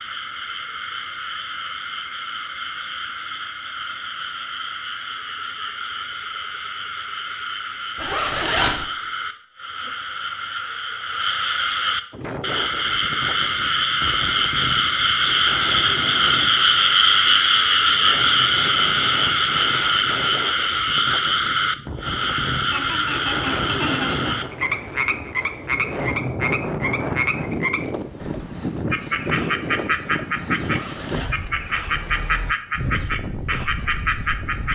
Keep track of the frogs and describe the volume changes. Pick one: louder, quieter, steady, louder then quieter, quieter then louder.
louder then quieter.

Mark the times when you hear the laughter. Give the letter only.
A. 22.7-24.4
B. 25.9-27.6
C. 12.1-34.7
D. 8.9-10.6
A.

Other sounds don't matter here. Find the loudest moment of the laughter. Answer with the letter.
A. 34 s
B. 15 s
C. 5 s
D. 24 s
D.